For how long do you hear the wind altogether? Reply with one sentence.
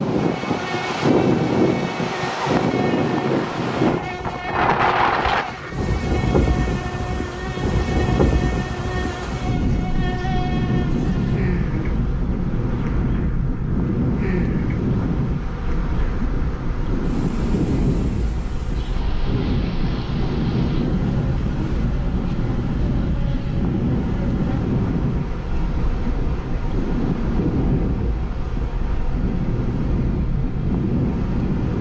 You can hear the wind for 32 seconds altogether.